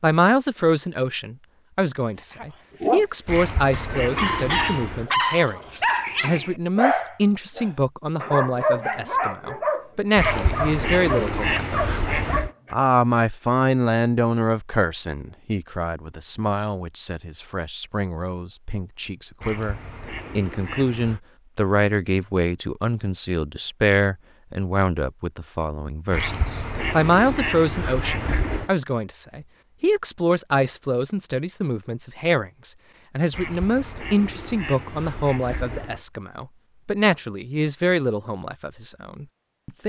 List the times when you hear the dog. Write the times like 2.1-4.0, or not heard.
2.2-12.8.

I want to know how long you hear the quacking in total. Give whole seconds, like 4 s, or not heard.
11 s.